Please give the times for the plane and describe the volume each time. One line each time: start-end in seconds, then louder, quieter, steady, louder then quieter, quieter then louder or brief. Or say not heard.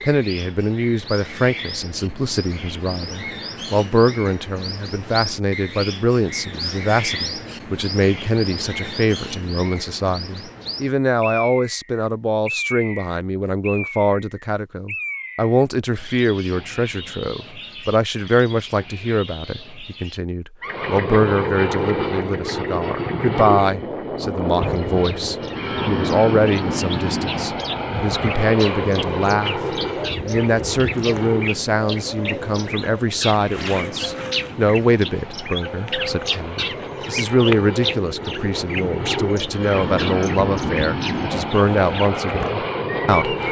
20.6-43.4 quieter then louder.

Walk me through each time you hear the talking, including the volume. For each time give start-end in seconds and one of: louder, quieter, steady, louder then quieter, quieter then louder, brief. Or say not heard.
0.0-43.4 steady.